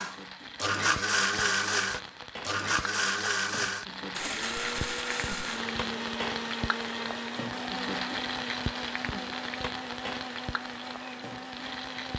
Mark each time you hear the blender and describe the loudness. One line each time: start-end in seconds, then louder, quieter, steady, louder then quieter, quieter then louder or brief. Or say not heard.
0.0-12.1 quieter.